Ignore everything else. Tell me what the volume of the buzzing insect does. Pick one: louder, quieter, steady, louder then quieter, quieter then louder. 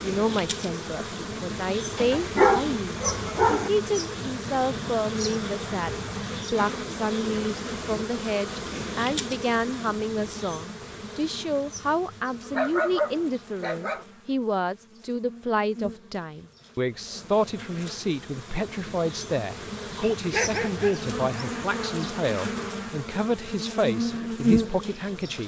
quieter then louder.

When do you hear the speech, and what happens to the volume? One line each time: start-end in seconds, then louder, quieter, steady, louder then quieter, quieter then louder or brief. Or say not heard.
0.0-25.4 steady.